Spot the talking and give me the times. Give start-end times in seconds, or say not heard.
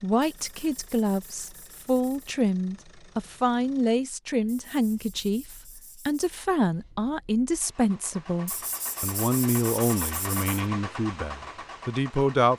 0.0-12.5.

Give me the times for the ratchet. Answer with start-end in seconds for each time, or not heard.
not heard.